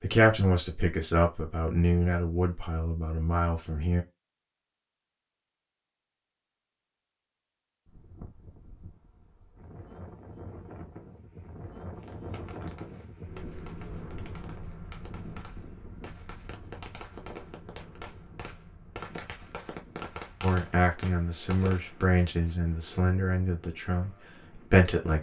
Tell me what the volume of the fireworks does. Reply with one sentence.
The volume of the fireworks goes up.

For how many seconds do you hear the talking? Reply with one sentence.
The talking can be heard for 9 seconds in total.